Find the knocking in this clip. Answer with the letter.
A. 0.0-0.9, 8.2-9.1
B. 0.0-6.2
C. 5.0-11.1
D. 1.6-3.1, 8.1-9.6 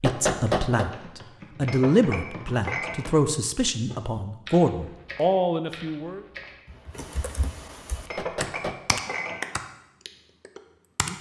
A.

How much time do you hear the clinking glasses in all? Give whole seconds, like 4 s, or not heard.
3 s.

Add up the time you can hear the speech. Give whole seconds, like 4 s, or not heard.
6 s.